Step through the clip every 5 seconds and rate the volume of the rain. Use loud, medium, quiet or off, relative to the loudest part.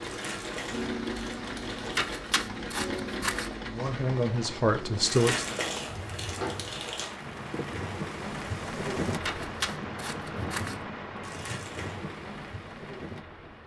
medium, loud, loud.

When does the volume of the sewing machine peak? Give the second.
1 s.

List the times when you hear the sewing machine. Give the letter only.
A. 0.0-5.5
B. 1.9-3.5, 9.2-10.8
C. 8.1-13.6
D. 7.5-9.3
A.